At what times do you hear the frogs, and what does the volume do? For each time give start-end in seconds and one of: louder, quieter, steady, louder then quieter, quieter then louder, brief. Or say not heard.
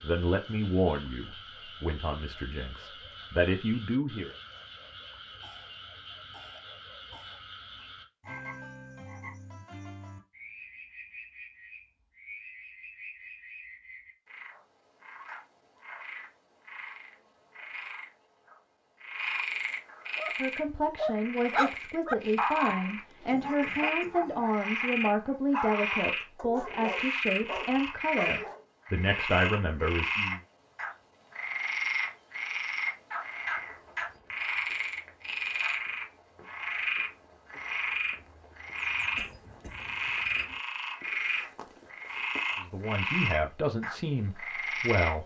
0.0-45.1 louder.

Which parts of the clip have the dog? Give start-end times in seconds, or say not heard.
20.1-28.6.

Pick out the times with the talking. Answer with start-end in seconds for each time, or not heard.
0.0-4.3, 20.4-30.4, 42.6-45.2.